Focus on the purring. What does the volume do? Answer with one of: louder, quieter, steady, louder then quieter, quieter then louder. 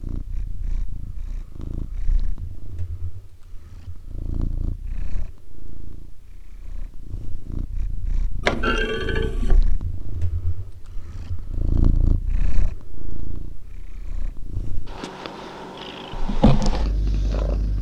louder.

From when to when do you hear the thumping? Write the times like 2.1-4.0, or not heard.
8.4-9.6.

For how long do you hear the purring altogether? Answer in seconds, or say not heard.
18 s.